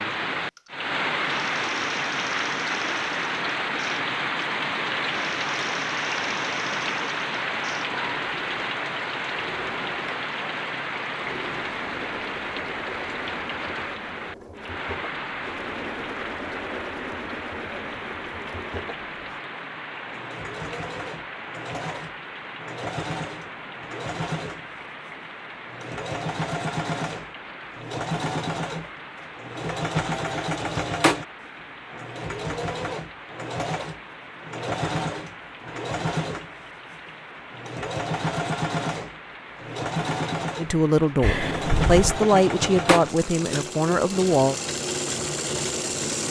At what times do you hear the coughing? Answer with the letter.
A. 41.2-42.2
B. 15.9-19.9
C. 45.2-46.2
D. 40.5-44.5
A.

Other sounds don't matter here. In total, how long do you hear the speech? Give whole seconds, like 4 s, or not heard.
4 s.